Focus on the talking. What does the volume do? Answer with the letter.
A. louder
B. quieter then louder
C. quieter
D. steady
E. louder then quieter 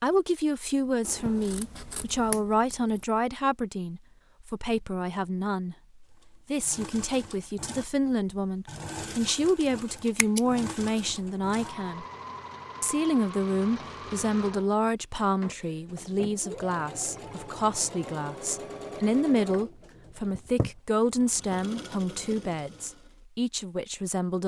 D.